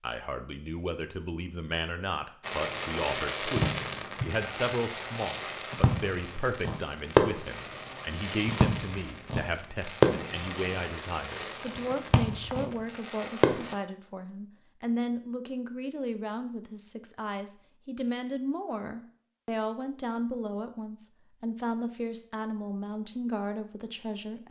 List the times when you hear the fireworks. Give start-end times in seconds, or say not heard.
2.5-13.8.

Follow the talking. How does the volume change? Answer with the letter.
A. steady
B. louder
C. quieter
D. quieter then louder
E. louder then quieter
A.